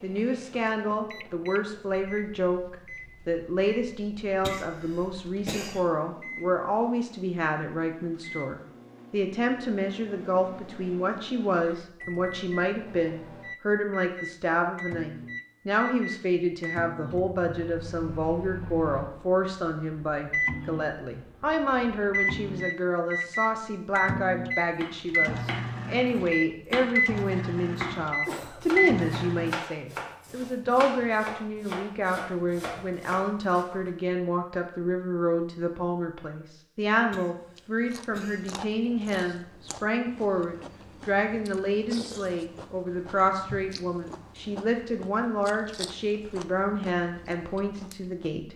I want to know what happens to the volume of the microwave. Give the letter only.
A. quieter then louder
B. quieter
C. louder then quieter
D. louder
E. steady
D.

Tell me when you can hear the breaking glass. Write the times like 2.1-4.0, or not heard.
not heard.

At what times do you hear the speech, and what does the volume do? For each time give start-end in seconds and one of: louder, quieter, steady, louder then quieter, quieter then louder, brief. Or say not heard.
0.0-48.5 steady.